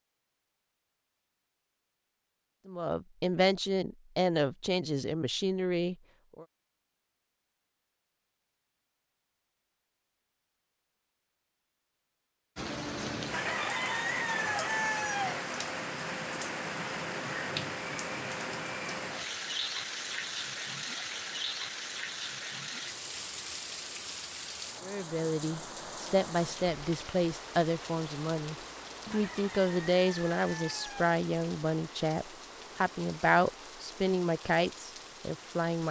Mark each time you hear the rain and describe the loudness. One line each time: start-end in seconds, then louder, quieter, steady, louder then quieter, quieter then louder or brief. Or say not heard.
12.6-35.8 quieter.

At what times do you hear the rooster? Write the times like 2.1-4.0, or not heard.
13.3-15.3, 29.1-31.1.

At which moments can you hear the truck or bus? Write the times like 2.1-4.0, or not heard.
not heard.